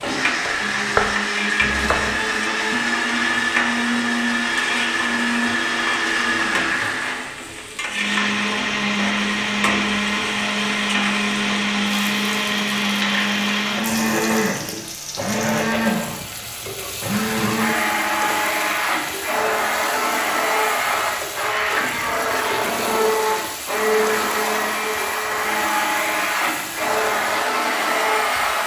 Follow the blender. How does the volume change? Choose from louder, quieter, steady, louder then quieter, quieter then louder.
steady.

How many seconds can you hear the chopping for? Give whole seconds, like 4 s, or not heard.
2 s.